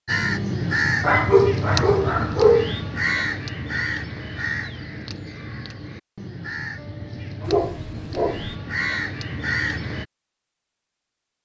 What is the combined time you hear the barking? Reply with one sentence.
You can hear the barking for 3 seconds altogether.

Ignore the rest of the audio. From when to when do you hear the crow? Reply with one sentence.
The crow can be heard from 0.1 to 10.1 s.